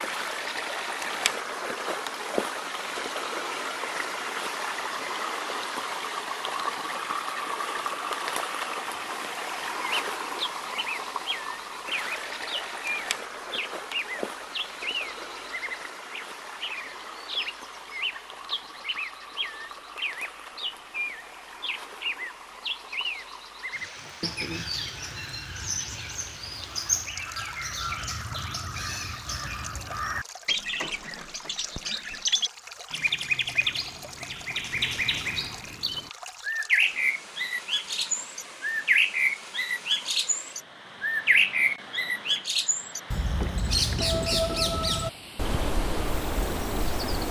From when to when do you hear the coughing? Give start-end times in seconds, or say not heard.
not heard.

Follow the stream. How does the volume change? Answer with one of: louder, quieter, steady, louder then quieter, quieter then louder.
quieter.